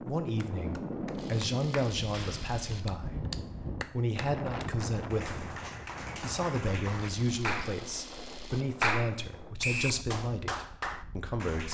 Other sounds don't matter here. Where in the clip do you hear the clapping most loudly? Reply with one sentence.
The volume of the clapping peaks at 9 seconds.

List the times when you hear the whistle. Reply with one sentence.
You can hear the whistle from 9.6 to 10.1 s.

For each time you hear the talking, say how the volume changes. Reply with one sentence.
You can hear the talking from 0.0 to 11.6 s, at a steady volume.